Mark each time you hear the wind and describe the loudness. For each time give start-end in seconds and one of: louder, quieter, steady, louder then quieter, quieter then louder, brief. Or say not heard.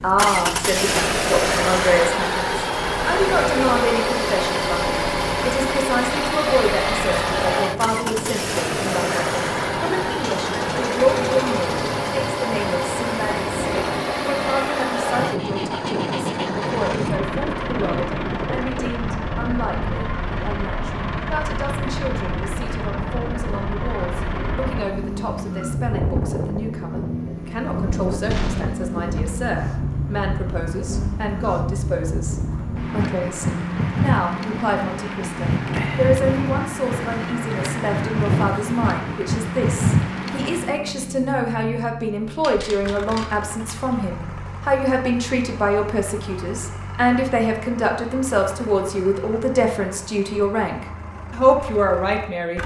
0.0-40.8 louder.